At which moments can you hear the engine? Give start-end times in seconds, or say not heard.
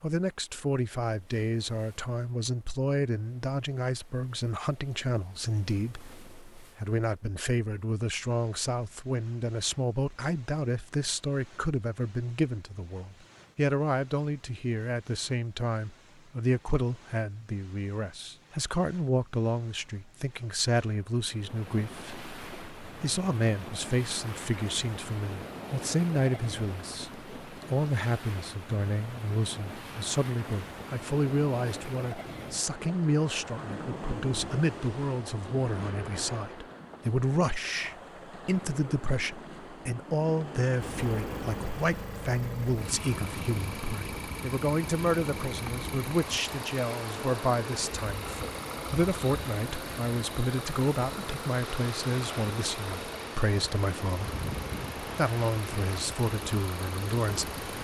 40.8-57.7.